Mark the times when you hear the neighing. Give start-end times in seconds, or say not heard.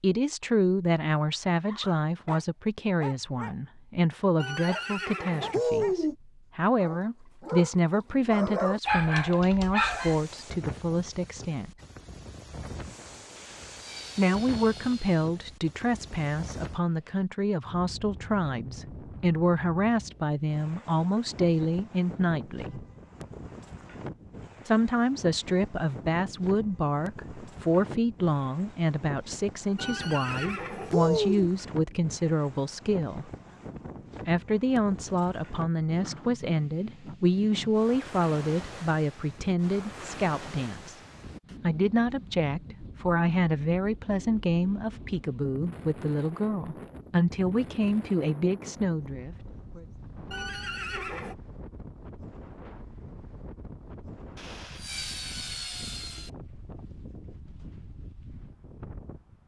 4.4-6.2, 29.8-31.5, 50.3-51.4.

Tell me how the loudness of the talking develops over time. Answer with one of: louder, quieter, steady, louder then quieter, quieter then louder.
steady.